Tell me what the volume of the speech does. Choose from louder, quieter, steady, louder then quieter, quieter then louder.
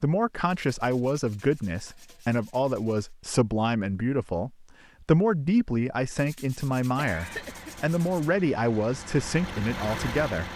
steady.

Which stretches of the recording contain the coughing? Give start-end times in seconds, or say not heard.
7.0-7.8.